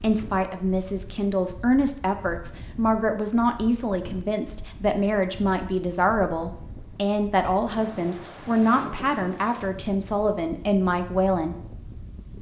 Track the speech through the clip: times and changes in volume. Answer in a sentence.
The speech can be heard from 0.0 to 11.6 s, at a steady volume.